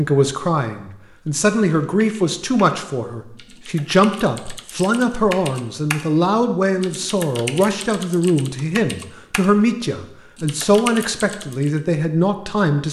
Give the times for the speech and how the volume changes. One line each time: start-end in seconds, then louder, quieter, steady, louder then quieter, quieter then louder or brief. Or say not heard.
0.0-12.8 steady.